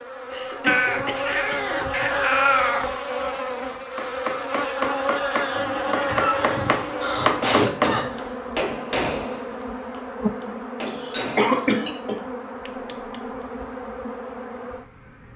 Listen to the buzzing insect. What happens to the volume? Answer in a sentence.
The loudness of the buzzing insect goes down.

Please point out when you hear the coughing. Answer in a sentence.
You can hear the coughing from 0.3 to 2.0 s, from 6.9 to 8.4 s and from 10.8 to 12.2 s.